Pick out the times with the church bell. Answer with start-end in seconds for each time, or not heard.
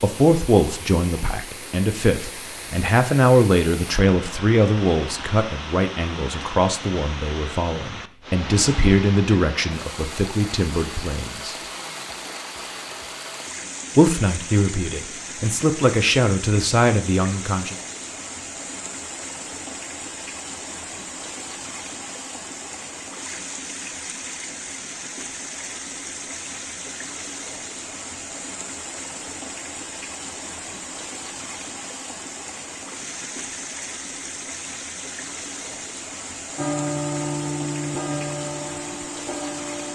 36.5-39.9.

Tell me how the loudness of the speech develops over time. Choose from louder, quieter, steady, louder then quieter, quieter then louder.
steady.